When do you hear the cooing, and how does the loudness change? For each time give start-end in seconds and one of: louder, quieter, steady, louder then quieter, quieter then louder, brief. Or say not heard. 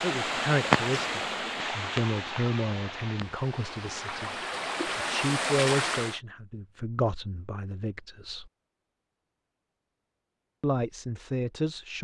not heard.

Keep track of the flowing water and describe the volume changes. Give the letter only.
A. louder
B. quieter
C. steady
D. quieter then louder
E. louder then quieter
D.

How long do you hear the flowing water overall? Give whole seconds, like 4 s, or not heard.
6 s.